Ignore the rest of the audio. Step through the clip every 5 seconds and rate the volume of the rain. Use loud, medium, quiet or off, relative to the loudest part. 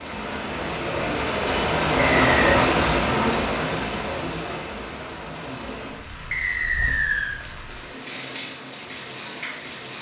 loud, quiet.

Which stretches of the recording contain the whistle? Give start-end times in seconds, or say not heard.
2.1-2.6, 6.3-7.3.